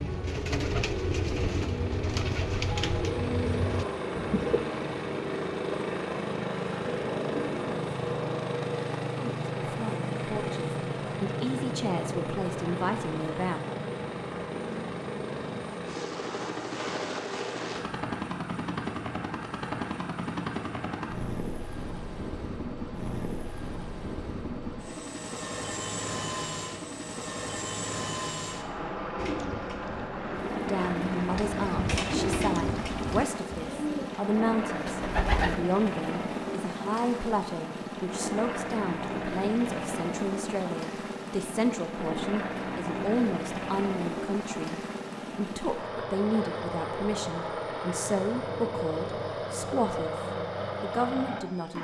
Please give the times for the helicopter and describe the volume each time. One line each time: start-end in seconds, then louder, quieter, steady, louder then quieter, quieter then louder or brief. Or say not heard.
0.0-51.7 steady.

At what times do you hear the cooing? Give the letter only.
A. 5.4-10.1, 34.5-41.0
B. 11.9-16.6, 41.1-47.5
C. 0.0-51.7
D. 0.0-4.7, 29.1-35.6
D.